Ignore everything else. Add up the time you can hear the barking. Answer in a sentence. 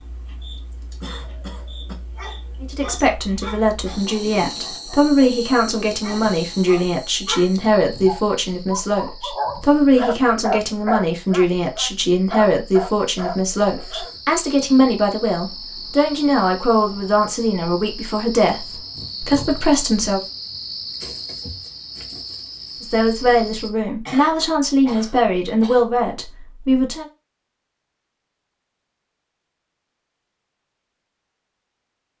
You can hear the barking for 12 seconds altogether.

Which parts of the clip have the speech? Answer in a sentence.
The speech can be heard from 2.6 to 20.2 s and from 22.8 to 27.1 s.